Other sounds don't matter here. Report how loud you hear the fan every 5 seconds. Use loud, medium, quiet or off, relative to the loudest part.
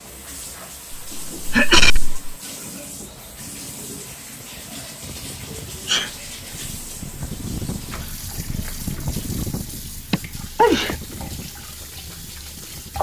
quiet, loud, medium.